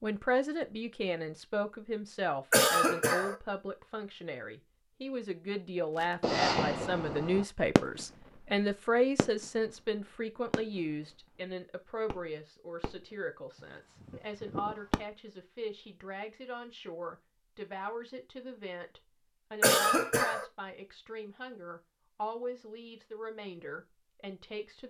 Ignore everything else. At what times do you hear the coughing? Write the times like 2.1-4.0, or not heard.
2.5-3.4, 19.6-20.4.